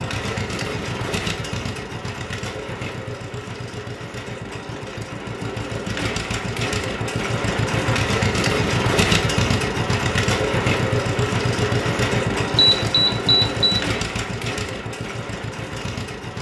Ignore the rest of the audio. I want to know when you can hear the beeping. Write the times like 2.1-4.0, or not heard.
12.6-13.8.